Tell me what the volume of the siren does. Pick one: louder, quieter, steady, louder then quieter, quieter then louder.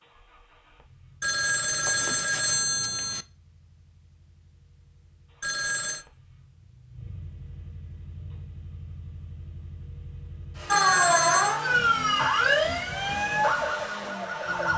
quieter.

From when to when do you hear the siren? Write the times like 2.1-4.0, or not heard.
10.7-14.7.